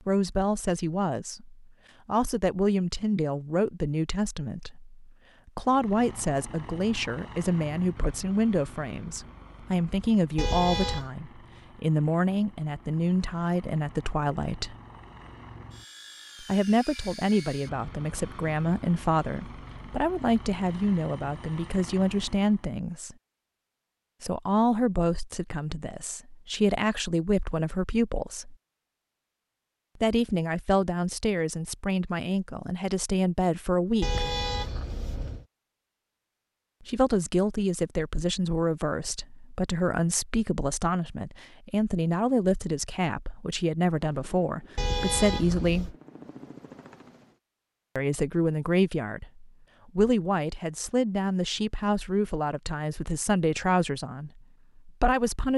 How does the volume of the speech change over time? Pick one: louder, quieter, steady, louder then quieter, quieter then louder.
steady.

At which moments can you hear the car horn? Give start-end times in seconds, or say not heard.
10.3-11.1, 34.0-35.5, 44.8-46.0.